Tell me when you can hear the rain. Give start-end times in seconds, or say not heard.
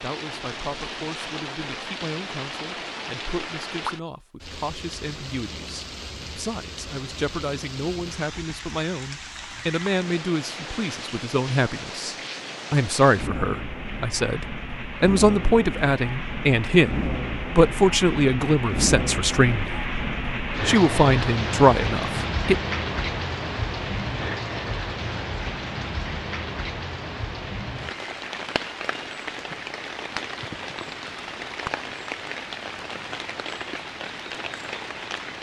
0.0-35.3.